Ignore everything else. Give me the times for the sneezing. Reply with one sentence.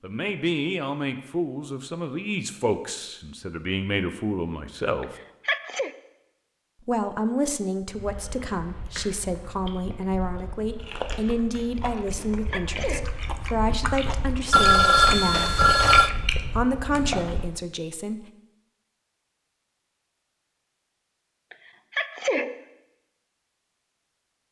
You can hear the sneezing from 5.0 to 5.9 s, from 12.1 to 13.2 s and from 21.5 to 22.6 s.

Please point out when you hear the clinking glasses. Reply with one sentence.
You can't hear the clinking glasses here.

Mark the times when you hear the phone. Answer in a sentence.
You can hear the phone from 14.5 to 16.1 s.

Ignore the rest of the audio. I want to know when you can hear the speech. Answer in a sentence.
The speech can be heard from 0.0 to 5.2 s, from 6.8 to 15.6 s and from 16.6 to 18.2 s.